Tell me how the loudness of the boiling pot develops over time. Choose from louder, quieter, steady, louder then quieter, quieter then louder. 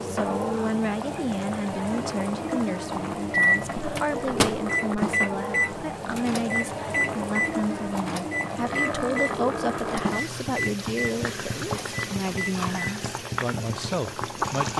steady.